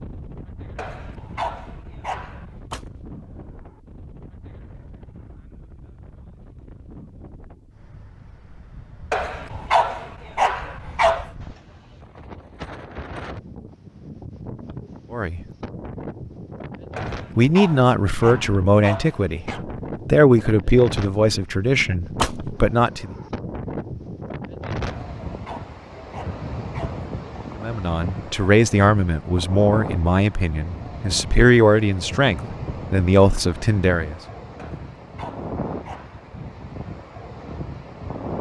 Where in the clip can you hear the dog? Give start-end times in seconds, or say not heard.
0.8-2.5, 9.1-11.3, 16.9-19.6, 24.9-27.1, 34.5-36.2.